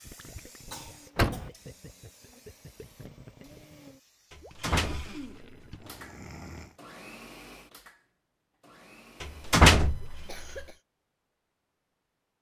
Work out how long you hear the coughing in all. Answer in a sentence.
The coughing can be heard for 3 seconds in total.